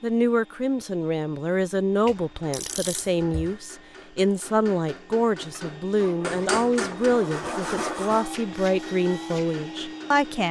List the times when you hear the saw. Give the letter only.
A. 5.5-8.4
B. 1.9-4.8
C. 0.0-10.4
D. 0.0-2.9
A.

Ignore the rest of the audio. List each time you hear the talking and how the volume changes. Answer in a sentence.
You can hear the talking from 0.0 to 10.4 s, at a steady volume.